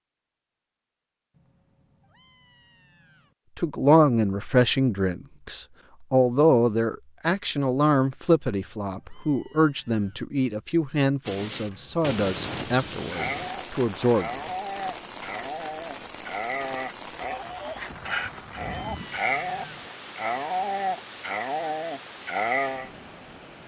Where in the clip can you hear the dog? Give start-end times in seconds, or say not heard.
12.9-22.9.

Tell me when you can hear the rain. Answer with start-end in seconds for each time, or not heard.
11.2-23.6.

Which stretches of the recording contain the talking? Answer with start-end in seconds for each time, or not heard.
3.5-14.4.